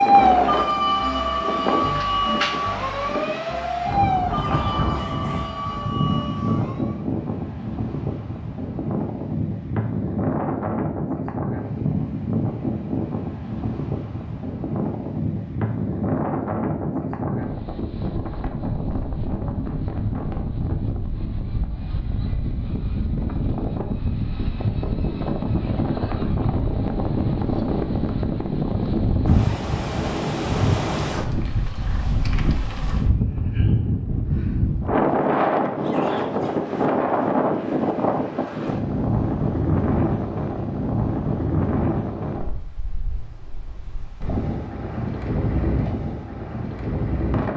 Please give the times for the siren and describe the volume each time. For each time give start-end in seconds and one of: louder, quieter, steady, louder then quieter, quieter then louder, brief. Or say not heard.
0.0-7.0 quieter.